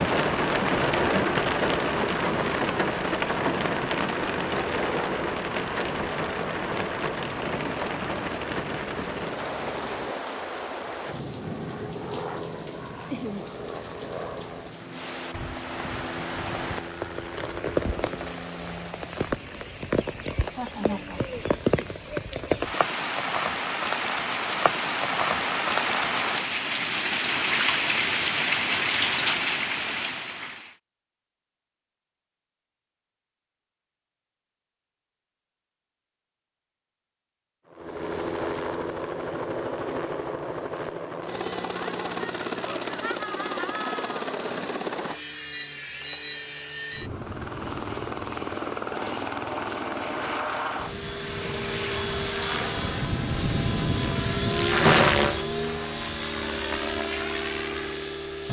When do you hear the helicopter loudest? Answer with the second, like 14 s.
55 s.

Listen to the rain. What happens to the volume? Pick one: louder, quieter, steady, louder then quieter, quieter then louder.
quieter then louder.